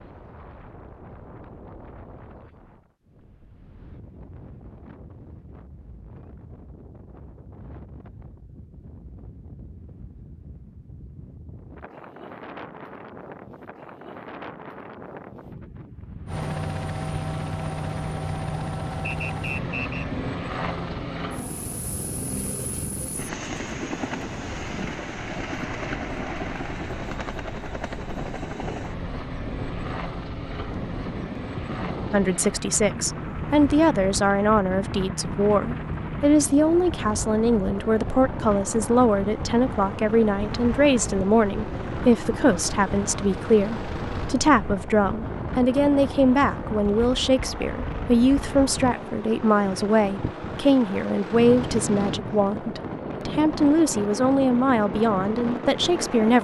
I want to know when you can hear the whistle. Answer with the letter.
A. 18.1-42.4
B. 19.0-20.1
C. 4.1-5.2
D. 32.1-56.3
B.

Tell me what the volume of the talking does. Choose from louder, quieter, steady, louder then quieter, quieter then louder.
steady.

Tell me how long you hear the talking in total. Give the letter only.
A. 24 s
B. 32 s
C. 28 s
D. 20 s
A.